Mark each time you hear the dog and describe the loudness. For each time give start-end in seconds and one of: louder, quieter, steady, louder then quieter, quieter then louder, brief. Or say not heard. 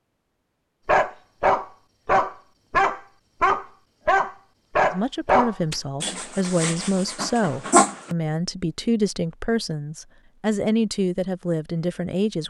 0.8-8.2 quieter.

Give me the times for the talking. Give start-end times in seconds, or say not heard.
4.9-12.4.